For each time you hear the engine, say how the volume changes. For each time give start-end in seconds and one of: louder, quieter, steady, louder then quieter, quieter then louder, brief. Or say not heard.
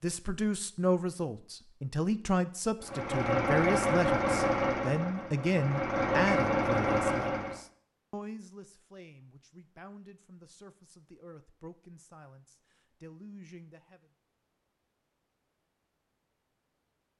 2.8-7.6 quieter then louder.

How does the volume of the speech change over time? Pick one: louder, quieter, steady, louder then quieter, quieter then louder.
quieter.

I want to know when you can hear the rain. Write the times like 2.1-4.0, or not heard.
not heard.